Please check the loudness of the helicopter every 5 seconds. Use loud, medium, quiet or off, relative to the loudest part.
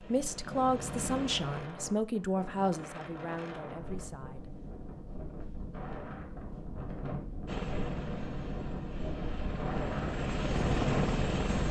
medium, medium, loud.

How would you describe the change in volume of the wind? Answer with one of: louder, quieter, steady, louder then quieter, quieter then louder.
louder.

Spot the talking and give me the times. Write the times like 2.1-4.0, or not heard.
0.0-4.6.